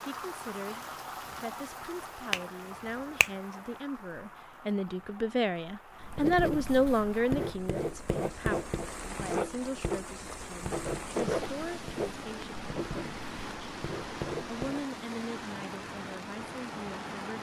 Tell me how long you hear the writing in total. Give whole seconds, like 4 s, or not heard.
9 s.